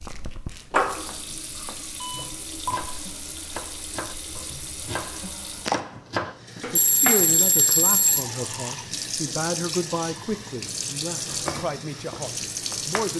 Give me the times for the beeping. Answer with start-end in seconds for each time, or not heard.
2.0-2.9, 6.8-8.2.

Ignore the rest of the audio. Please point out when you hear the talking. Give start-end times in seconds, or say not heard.
6.5-13.1.